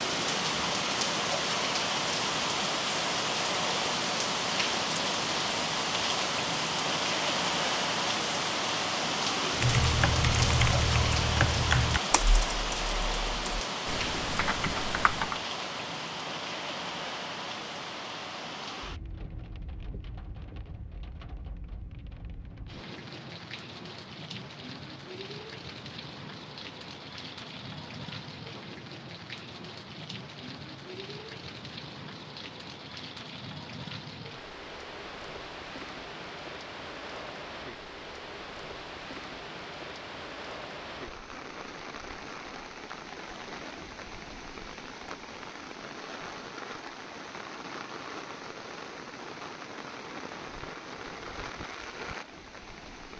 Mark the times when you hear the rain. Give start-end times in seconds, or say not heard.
0.0-53.1.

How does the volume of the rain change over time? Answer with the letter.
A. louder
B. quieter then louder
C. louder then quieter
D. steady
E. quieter
E.